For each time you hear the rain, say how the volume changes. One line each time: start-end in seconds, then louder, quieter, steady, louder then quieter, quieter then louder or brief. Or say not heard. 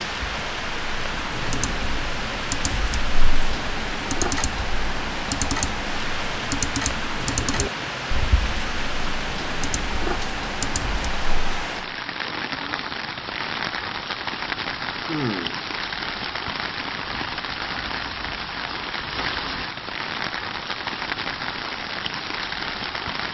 0.0-23.2 steady.